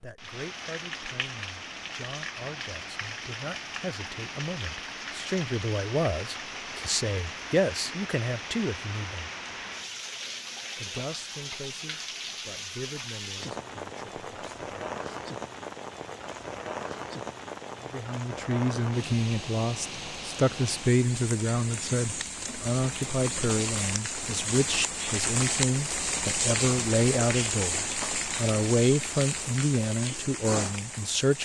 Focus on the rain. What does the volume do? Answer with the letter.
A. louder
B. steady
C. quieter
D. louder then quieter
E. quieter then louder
A.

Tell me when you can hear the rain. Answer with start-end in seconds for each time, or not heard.
0.0-31.4.